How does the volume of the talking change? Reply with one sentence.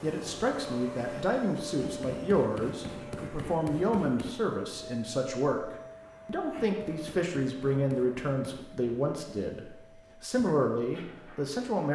The volume of the talking stays about the same.